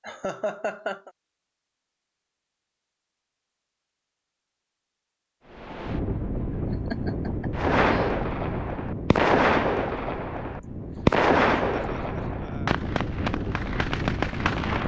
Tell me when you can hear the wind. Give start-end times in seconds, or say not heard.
5.5-14.8.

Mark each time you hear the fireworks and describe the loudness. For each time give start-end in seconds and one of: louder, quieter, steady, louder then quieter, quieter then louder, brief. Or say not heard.
7.5-14.8 louder then quieter.